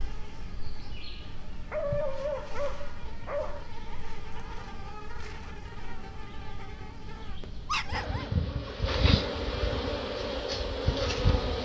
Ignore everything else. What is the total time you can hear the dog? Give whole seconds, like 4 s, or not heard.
3 s.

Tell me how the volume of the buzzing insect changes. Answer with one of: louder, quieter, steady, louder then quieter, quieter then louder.
louder.